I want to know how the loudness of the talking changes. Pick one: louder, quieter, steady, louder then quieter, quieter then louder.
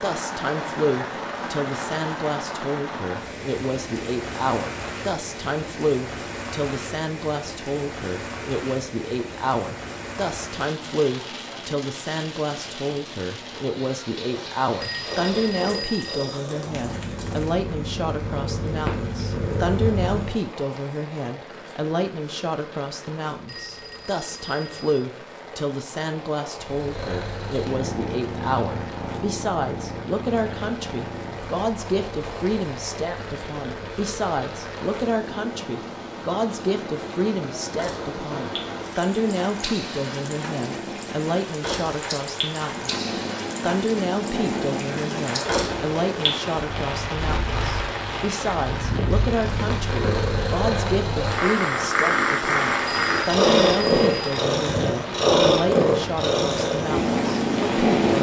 steady.